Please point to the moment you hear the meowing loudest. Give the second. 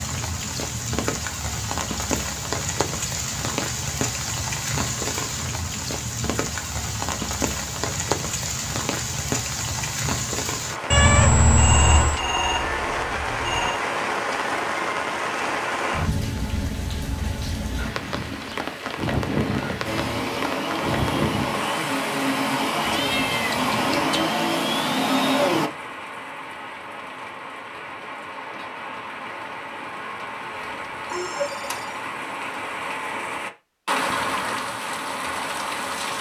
11 s.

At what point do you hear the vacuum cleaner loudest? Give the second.
25 s.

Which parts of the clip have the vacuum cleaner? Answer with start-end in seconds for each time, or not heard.
19.8-25.7.